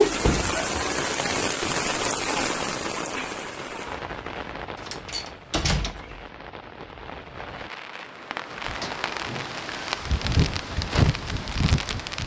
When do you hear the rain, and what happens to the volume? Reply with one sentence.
The rain can be heard from 0.0 to 12.2 s, getting quieter then louder.